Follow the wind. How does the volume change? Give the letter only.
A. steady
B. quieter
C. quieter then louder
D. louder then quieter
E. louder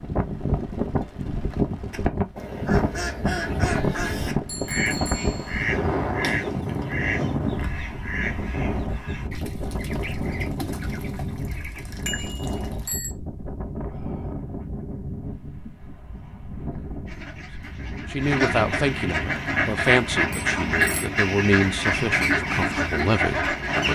B.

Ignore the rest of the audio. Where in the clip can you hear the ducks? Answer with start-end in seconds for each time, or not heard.
1.9-12.9, 17.1-23.9.